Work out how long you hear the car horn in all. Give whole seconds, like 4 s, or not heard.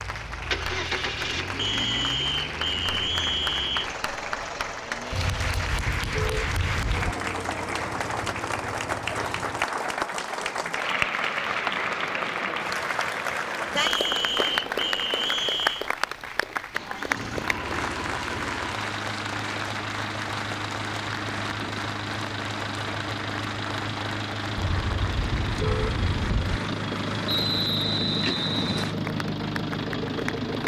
4 s.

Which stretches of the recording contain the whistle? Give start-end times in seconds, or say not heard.
1.6-3.9, 13.8-15.9, 27.2-28.9.